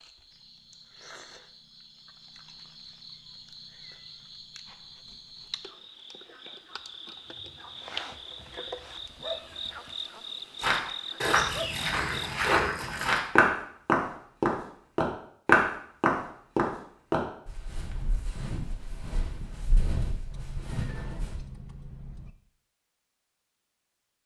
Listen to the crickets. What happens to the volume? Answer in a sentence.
The loudness of the crickets goes up.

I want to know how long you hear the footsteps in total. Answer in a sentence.
The footsteps can be heard for 11 seconds in total.